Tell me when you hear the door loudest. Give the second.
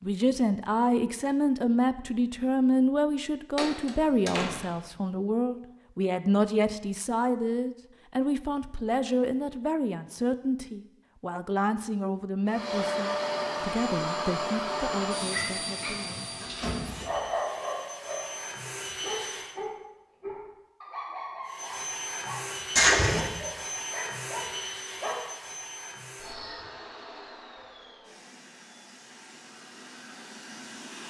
23 s.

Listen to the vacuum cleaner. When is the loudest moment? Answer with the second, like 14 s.
13 s.